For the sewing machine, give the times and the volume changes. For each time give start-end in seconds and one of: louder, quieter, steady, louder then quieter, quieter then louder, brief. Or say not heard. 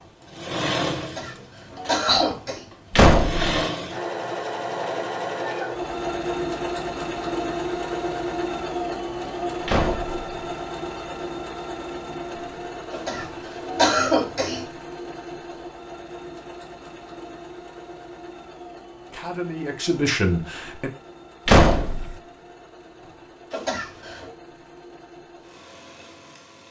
0.0-26.6 quieter.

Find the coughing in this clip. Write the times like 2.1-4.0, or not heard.
1.0-2.6, 12.9-14.7, 23.5-24.3.